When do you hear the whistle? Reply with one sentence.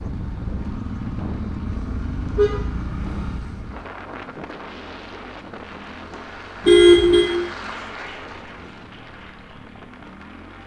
The whistle can't be heard in this clip.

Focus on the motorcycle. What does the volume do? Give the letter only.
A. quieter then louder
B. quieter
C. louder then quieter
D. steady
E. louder
B.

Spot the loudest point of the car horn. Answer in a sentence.
The volume of the car horn peaks at 7 seconds.